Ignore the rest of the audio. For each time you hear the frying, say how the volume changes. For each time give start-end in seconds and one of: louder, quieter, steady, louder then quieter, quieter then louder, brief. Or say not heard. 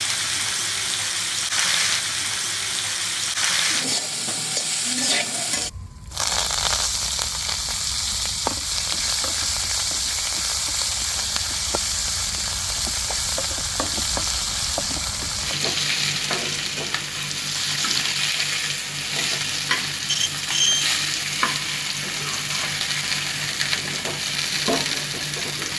0.0-25.7 steady.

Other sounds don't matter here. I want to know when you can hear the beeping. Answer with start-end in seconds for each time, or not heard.
20.1-20.9.